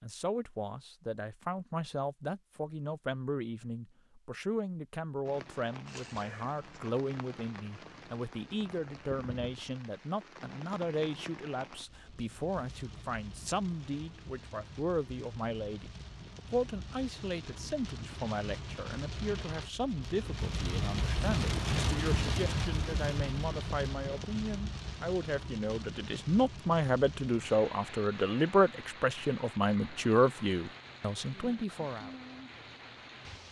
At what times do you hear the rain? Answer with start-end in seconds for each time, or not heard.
5.2-33.4.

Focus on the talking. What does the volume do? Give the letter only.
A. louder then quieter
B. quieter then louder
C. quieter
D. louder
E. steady
D.